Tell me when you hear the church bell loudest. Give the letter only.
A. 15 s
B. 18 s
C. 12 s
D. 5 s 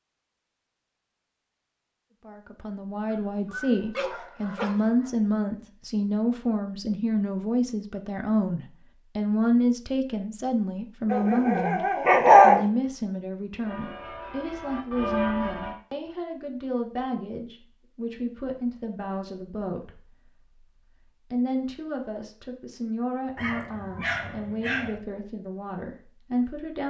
A.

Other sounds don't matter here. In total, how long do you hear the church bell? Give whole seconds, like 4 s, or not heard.
2 s.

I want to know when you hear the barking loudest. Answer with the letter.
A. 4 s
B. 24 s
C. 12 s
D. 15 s
C.